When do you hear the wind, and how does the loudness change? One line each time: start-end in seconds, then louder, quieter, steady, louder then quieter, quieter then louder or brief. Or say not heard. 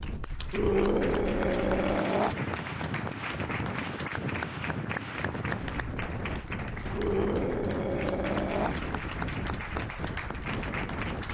0.0-11.3 steady.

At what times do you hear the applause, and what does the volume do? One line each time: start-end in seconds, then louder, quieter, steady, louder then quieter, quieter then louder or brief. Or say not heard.
0.0-11.3 steady.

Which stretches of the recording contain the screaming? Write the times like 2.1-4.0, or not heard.
0.5-2.4, 6.9-8.8.